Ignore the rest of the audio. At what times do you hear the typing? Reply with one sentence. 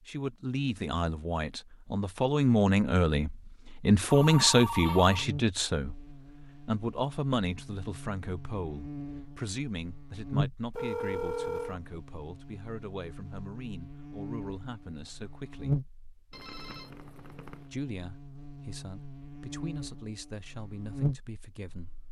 The typing can't be heard in this clip.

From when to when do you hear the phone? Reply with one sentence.
The phone can be heard from 4.1 to 5.2 s, from 10.8 to 11.8 s and from 16.3 to 17.6 s.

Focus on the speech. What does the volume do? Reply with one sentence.
The volume of the speech goes down.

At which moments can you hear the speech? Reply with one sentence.
You can hear the speech from 0.0 to 15.8 s and from 17.6 to 21.9 s.